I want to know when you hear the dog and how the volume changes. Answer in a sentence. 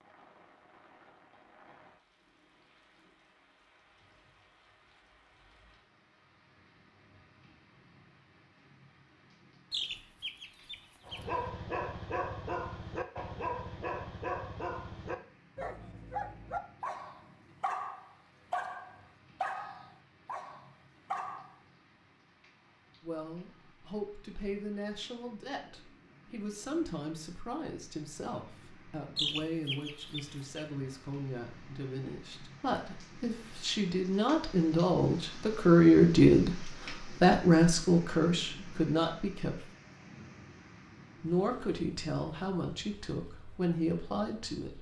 You can hear the dog from 11.1 to 21.6 s, at a steady volume.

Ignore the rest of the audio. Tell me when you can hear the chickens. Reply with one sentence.
The chickens can be heard from 9.7 to 11.4 s and from 29.1 to 30.6 s.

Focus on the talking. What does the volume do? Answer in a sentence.
The loudness of the talking goes up, then down.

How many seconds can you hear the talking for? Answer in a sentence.
The talking can be heard for 20 seconds in total.